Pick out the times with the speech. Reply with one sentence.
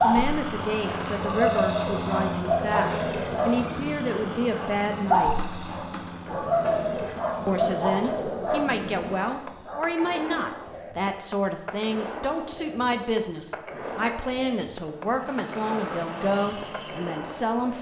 The speech can be heard from 0.0 to 5.3 s and from 7.5 to 17.7 s.